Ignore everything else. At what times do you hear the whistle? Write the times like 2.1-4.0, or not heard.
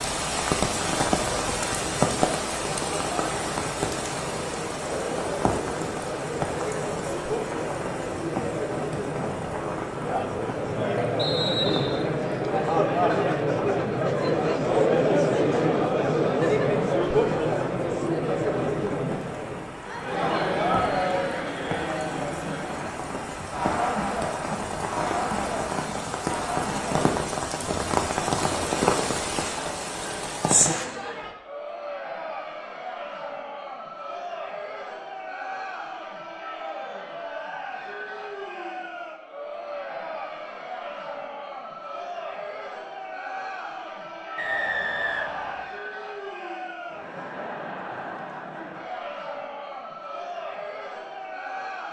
11.2-12.1, 44.4-45.7.